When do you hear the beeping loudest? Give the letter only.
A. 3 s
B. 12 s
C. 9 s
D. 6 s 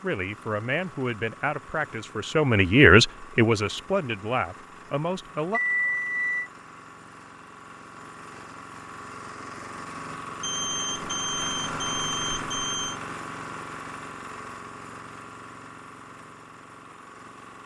D.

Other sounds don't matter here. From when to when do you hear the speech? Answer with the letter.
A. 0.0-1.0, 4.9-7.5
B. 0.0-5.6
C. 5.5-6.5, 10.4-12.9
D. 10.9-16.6
B.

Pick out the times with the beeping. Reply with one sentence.
The beeping can be heard from 5.5 to 6.5 s and from 10.4 to 12.9 s.